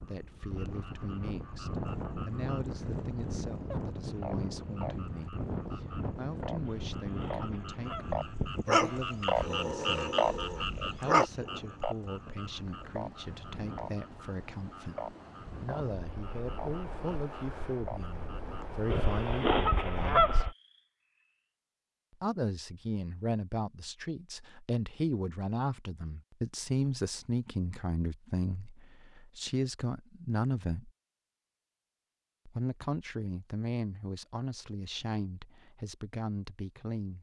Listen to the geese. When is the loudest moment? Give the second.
20 s.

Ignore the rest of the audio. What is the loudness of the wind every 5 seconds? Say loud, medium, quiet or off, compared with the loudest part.
loud, loud, medium, medium, off, off, off, off.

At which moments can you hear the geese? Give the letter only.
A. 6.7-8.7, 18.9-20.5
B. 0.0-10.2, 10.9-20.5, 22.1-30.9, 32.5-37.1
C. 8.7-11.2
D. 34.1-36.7
A.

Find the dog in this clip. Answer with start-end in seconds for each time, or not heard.
8.7-11.2.